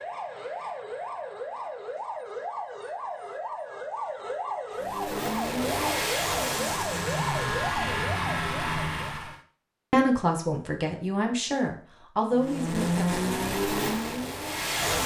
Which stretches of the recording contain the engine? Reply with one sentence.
The engine can be heard from 4.8 to 9.4 s and from 12.3 to 15.0 s.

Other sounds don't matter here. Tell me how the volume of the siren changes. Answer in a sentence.
The loudness of the siren stays about the same.